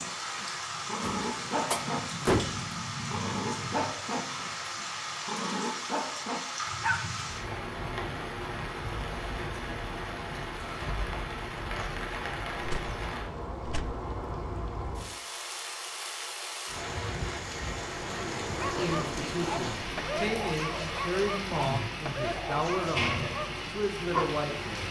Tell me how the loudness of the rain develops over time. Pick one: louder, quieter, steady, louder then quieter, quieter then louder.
steady.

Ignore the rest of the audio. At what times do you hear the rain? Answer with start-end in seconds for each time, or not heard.
0.0-24.8.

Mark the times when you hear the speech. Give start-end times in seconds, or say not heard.
18.7-24.8.